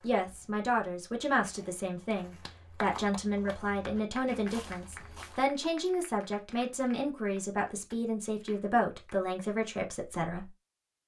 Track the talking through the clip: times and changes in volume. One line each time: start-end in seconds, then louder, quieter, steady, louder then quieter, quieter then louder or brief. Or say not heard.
0.0-10.5 steady.